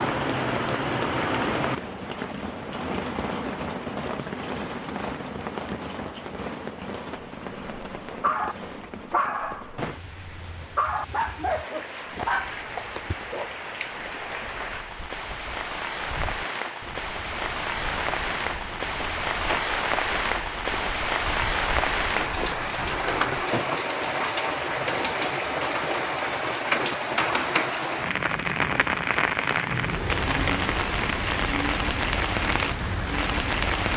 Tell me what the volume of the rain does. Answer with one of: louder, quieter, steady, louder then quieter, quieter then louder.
quieter then louder.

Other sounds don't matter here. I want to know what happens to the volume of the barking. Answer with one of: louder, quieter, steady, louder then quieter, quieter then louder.
quieter then louder.